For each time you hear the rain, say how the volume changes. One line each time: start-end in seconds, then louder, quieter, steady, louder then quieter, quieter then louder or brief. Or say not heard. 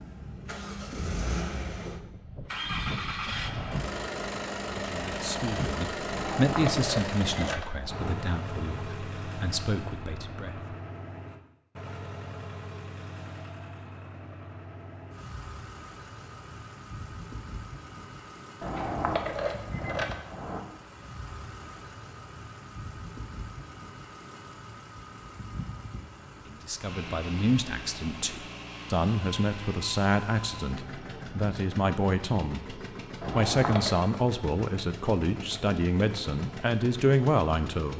not heard.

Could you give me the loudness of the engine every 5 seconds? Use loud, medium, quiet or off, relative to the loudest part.
loud, loud, medium, medium, medium, medium, medium, medium.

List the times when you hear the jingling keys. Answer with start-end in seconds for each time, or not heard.
6.1-8.2, 18.6-20.6, 33.2-34.0.